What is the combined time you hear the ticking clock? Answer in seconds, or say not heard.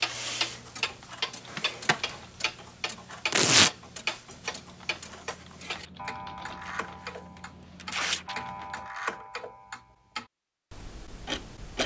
12 s.